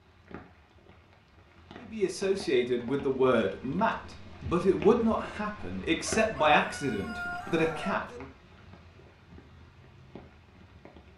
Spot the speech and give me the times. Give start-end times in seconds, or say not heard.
1.8-8.2.